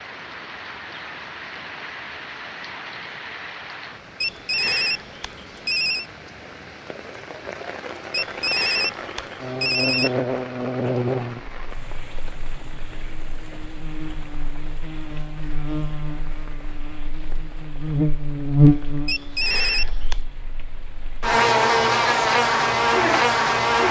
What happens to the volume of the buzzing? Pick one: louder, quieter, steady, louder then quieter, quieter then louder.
quieter then louder.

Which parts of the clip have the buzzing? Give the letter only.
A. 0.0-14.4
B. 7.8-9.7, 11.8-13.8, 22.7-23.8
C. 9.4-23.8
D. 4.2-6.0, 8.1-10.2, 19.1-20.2
C.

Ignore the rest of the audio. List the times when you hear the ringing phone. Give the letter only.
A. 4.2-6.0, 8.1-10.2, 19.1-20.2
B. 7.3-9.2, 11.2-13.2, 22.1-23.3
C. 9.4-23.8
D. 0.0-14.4
A.